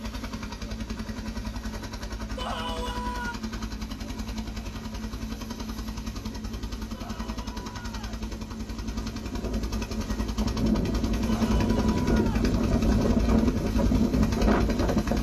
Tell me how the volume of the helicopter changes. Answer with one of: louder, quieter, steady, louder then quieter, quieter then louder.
louder.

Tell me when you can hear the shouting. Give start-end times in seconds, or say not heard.
2.4-3.4, 6.9-8.2, 11.2-12.4.